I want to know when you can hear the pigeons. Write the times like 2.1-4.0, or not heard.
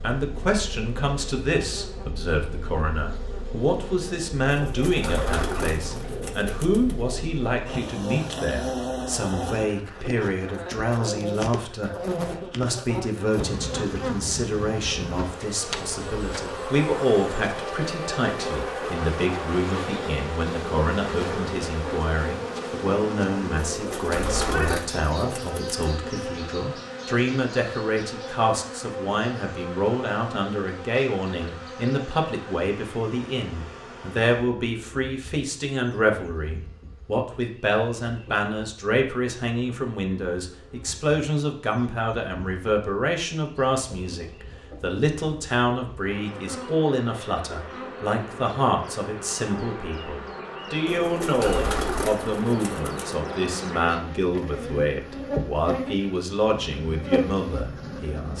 4.5-7.2, 23.6-25.9, 50.9-53.1.